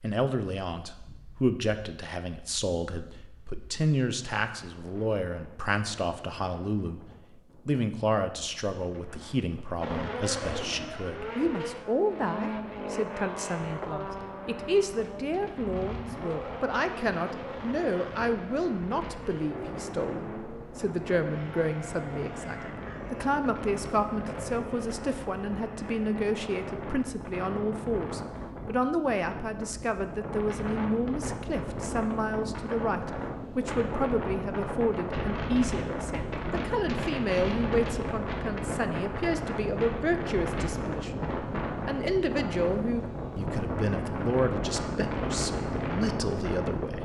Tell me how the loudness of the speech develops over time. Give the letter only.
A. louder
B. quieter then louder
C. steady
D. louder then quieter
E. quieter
C.